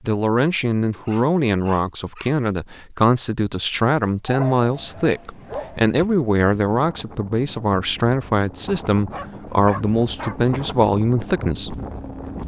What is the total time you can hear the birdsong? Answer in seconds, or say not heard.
not heard.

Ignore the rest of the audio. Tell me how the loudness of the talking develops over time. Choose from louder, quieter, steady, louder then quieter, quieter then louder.
steady.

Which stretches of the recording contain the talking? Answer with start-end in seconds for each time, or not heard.
0.0-11.8.